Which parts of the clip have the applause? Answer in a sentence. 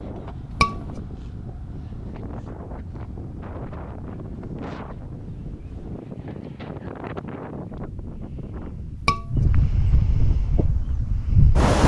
You can't hear the applause here.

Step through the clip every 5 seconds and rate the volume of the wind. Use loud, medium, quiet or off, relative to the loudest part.
quiet, medium, loud.